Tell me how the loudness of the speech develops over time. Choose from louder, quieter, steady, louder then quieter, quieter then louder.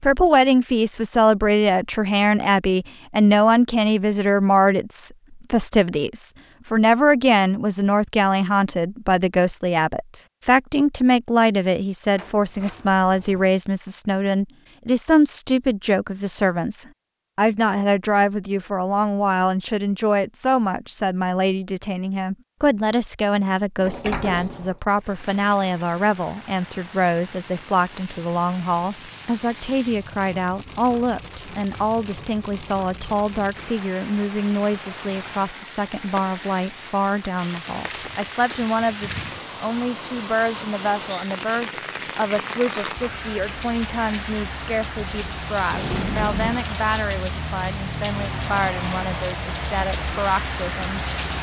quieter.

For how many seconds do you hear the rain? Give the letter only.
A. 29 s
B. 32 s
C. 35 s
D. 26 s
D.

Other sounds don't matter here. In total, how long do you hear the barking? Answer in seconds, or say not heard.
not heard.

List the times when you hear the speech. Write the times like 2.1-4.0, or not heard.
0.0-51.3.